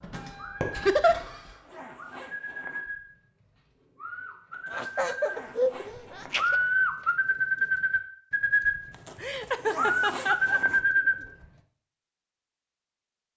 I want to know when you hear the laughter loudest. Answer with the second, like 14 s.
1 s.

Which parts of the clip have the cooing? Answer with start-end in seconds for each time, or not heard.
0.3-0.8, 1.9-5.5, 6.3-11.2.